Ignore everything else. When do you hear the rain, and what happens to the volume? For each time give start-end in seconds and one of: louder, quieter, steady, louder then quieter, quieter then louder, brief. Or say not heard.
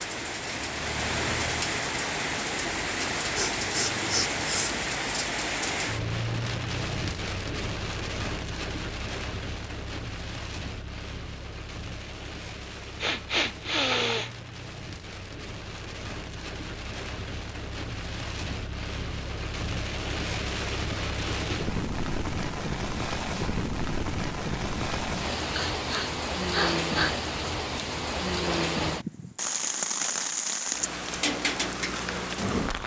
0.0-32.8 quieter then louder.